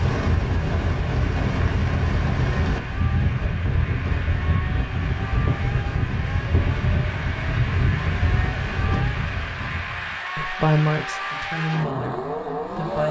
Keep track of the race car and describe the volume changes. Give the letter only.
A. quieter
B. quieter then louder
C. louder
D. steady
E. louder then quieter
C.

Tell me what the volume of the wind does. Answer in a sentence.
The loudness of the wind stays about the same.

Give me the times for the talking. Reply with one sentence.
You can hear the talking from 10.3 to 13.0 s.